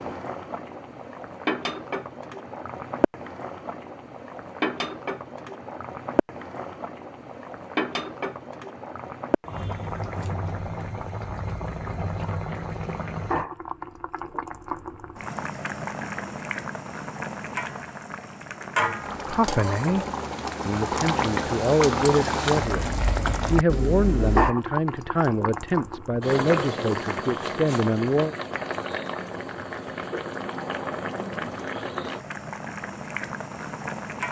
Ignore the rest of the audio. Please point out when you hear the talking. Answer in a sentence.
You can hear the talking from 19.2 to 20.1 s and from 20.6 to 28.4 s.